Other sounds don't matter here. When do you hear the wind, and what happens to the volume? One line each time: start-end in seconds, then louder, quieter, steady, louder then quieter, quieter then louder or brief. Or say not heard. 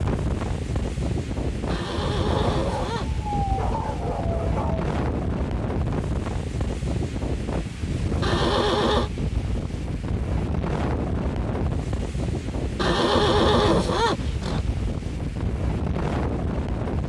0.0-17.0 steady.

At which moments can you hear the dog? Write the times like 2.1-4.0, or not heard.
2.3-4.9.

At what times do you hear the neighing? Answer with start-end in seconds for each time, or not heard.
1.6-3.2, 8.2-9.1, 12.8-14.7.